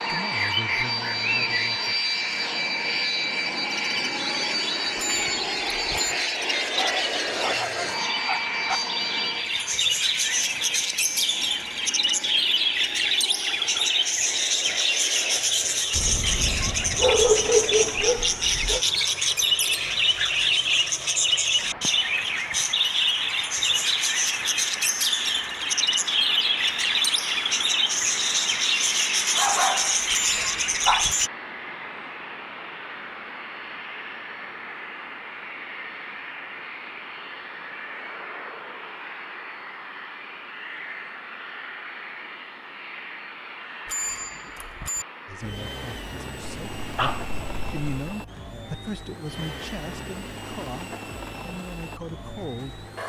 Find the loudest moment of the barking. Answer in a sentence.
The volume of the barking peaks at 17 seconds.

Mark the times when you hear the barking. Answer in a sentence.
The barking can be heard from 6.8 to 8.8 s, from 15.9 to 18.8 s, from 29.3 to 31.1 s and from 46.4 to 47.9 s.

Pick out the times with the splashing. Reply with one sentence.
You can't hear the splashing here.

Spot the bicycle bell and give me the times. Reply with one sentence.
You can hear the bicycle bell from 5.0 to 6.2 s, from 30.1 to 31.3 s and from 43.9 to 45.0 s.